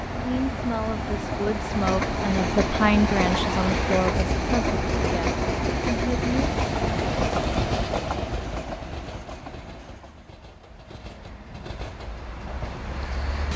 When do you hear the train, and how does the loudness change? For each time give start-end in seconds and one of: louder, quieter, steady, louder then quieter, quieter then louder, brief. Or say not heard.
0.0-13.5 quieter.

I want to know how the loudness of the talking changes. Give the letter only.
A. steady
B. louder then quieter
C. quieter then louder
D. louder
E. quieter
B.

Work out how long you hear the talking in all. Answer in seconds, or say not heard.
6 s.